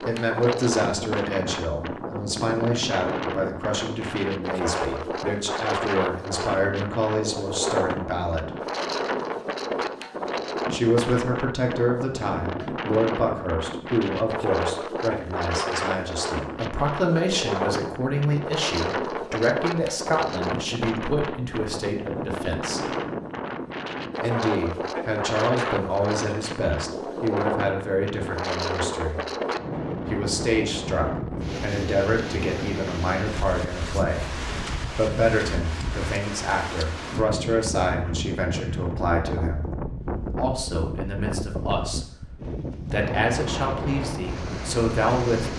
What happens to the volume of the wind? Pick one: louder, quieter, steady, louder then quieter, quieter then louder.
steady.